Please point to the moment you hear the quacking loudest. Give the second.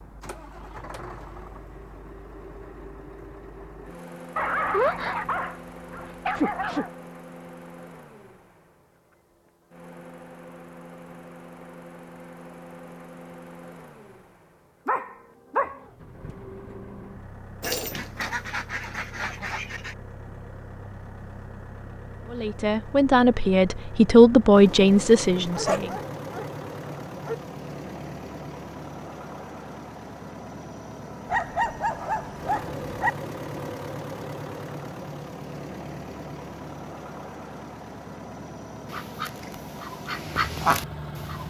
41 s.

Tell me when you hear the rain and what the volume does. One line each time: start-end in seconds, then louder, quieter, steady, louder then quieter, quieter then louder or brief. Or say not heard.
not heard.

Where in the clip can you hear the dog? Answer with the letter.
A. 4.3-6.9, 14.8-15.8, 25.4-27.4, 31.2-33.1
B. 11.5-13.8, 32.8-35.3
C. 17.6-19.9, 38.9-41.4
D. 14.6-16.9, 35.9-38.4
A.